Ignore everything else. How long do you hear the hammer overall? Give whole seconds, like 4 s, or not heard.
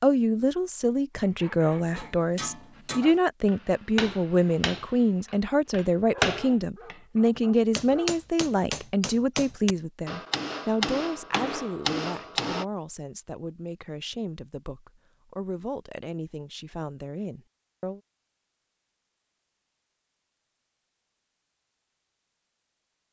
11 s.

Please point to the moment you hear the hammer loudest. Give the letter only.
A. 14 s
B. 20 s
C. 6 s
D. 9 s
C.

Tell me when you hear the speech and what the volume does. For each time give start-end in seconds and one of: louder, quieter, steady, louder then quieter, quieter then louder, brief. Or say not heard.
0.0-18.0 quieter.